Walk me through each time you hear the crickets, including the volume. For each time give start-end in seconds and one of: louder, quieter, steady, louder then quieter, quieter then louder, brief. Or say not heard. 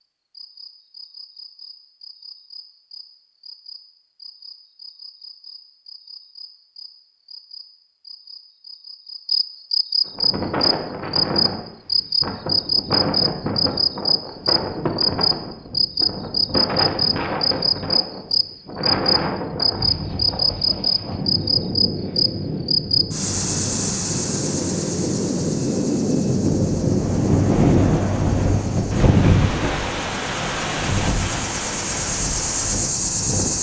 0.3-33.5 louder then quieter.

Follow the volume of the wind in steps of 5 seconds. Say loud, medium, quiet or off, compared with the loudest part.
off, off, medium, medium, medium, loud, medium.